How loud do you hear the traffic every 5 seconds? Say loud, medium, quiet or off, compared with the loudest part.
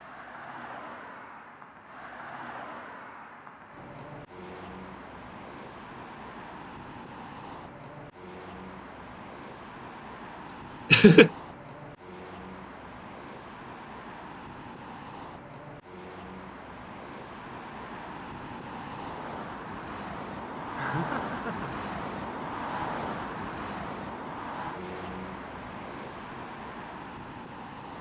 medium, medium, medium, medium, loud, medium.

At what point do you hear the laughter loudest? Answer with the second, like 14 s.
11 s.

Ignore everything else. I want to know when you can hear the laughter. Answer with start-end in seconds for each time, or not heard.
10.9-11.3, 20.8-21.7.